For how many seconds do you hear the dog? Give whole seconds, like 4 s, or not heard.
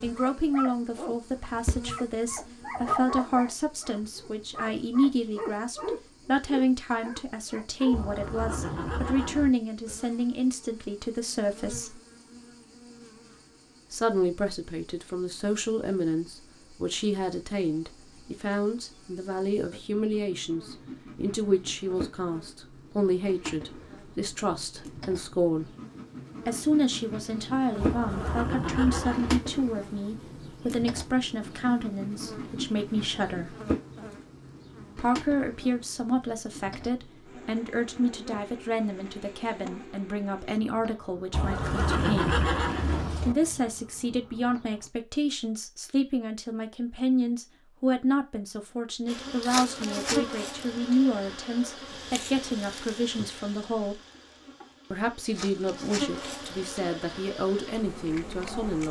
8 s.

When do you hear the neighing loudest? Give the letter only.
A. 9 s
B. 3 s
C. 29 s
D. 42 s
D.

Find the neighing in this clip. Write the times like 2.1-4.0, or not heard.
7.9-9.6, 27.8-29.4, 41.3-43.4.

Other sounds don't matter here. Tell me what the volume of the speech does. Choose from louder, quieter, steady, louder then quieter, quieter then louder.
steady.